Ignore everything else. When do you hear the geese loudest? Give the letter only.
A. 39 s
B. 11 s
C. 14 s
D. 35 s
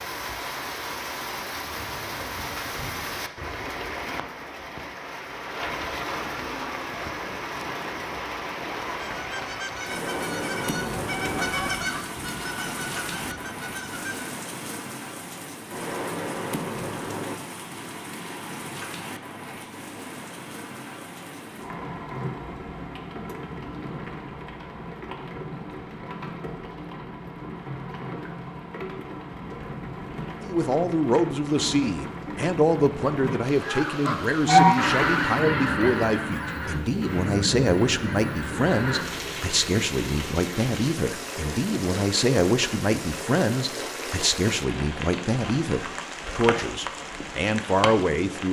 D.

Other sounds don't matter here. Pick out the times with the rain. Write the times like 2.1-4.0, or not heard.
0.0-48.4.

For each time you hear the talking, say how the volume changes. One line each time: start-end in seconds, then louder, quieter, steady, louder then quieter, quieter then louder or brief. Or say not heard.
30.4-48.4 steady.